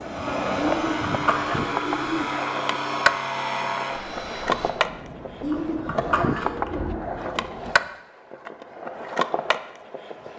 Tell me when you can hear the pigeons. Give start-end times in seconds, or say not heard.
0.6-2.3, 5.4-7.0.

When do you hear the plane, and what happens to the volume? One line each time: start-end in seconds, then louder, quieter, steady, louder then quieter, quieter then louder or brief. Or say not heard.
0.0-4.7 steady.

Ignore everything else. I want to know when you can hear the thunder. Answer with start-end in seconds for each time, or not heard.
4.7-7.8.